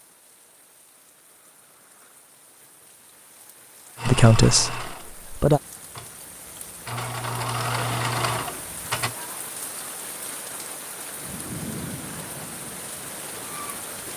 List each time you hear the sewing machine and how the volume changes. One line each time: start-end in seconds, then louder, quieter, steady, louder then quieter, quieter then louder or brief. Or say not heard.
4.0-9.2 quieter then louder.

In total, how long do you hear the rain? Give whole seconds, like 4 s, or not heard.
14 s.